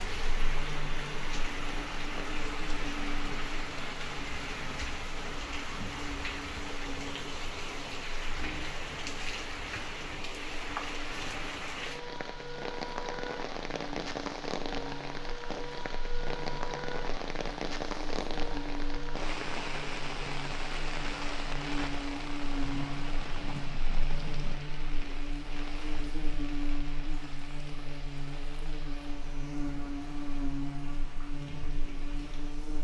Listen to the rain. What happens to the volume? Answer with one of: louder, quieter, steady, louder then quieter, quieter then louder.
quieter.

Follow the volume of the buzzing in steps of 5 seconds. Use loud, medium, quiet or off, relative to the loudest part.
medium, medium, medium, medium, loud, loud, loud.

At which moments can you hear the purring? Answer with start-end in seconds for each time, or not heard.
not heard.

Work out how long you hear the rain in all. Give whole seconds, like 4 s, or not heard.
33 s.